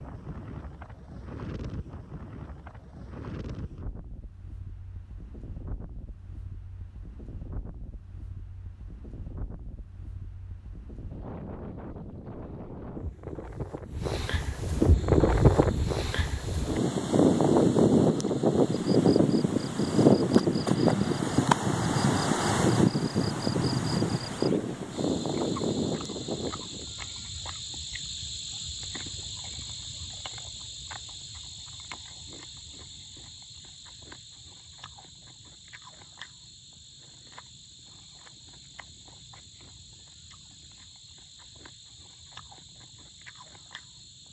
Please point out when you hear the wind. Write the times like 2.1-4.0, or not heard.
0.0-26.9.